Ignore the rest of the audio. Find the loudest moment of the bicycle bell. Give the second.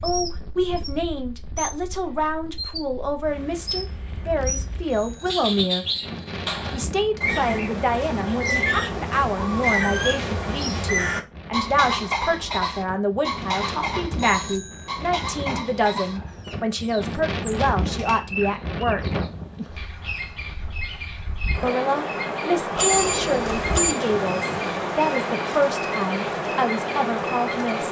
23 s.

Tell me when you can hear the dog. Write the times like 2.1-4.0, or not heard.
not heard.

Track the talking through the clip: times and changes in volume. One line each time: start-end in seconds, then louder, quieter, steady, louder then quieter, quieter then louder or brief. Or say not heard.
0.0-5.8 steady
6.7-19.1 steady
21.6-27.8 steady.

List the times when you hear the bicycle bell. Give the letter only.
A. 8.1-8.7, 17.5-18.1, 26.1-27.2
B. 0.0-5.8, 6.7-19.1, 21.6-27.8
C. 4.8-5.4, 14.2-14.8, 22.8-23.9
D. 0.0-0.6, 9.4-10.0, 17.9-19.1
C.